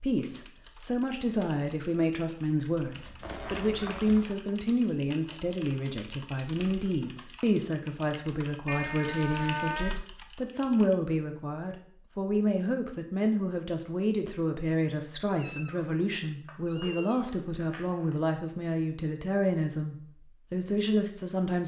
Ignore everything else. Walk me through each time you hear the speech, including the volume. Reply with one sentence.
The speech can be heard from 0.0 to 21.6 s, at a steady volume.